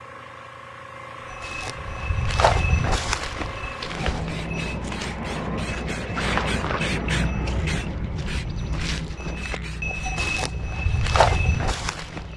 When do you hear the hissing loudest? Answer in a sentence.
The loudest moment of the hissing is at 7 seconds.